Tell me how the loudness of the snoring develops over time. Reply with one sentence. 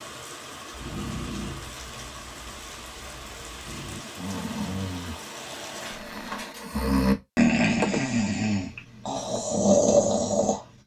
The volume of the snoring goes up.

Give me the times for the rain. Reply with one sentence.
You can hear the rain from 0.0 to 6.5 s.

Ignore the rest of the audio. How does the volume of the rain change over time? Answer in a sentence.
The volume of the rain stays about the same.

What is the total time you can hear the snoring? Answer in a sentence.
You can hear the snoring for 10 seconds altogether.